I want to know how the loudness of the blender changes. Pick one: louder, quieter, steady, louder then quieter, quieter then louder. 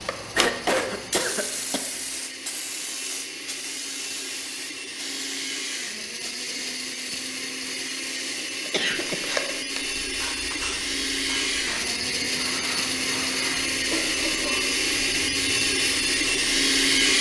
louder.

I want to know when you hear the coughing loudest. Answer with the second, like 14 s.
1 s.